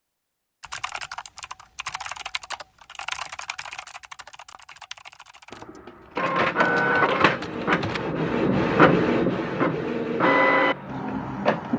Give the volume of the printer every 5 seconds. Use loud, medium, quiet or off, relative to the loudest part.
off, loud, loud.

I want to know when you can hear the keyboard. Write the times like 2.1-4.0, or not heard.
0.6-8.0.